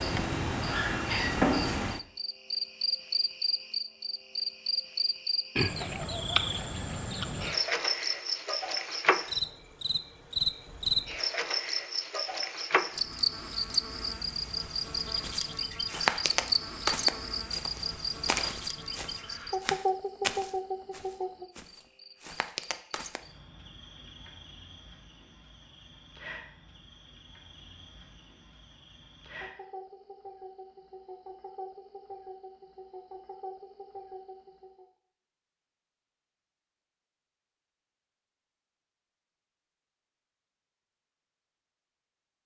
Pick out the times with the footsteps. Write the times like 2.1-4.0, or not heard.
15.2-23.2.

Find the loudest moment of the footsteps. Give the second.
16 s.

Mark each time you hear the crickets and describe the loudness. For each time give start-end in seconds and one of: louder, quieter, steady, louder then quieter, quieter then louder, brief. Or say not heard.
0.0-34.9 quieter.